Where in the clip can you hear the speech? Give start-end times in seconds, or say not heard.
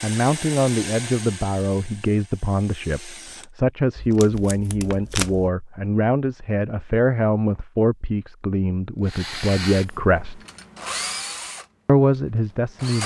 0.0-10.4, 11.8-13.0.